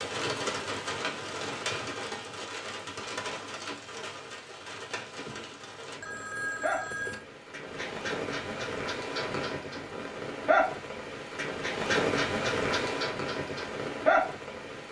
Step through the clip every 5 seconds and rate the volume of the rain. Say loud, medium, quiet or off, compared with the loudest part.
medium, medium, loud.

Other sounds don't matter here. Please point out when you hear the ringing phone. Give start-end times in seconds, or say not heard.
6.0-7.2.